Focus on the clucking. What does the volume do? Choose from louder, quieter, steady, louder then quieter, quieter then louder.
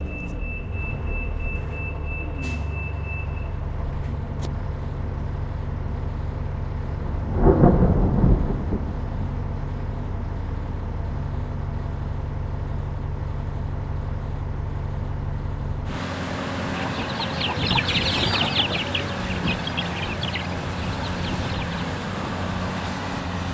quieter.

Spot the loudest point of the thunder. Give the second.
8 s.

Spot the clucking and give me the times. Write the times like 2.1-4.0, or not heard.
16.8-21.7.